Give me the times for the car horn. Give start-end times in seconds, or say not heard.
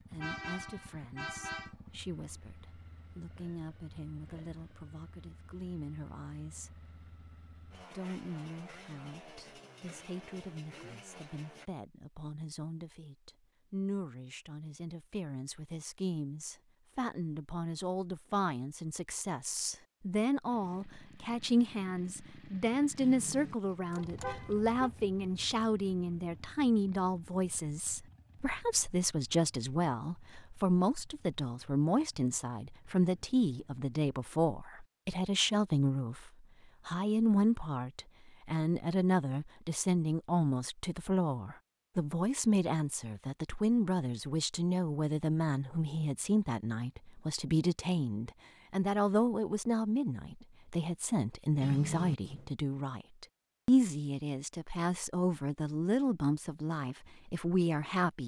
0.2-1.8, 23.0-24.9, 51.6-52.5.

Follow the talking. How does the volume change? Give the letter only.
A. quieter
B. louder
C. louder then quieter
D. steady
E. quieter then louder
B.